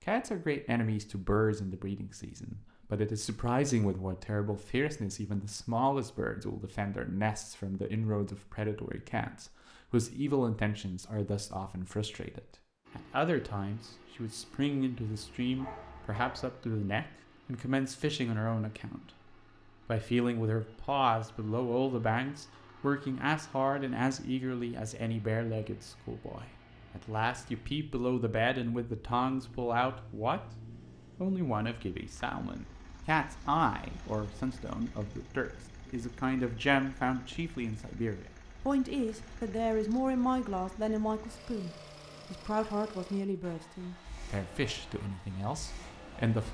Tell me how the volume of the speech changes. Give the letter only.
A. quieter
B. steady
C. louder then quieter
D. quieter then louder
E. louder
B.